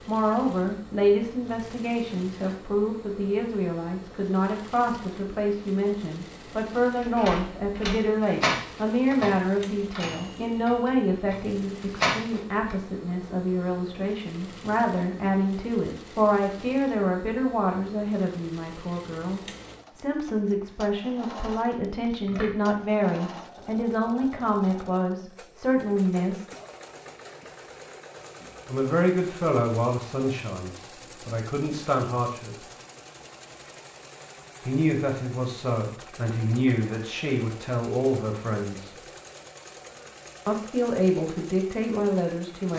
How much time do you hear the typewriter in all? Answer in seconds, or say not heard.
6 s.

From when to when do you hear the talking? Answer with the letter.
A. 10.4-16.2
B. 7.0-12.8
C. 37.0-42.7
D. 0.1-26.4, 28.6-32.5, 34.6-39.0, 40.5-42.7
D.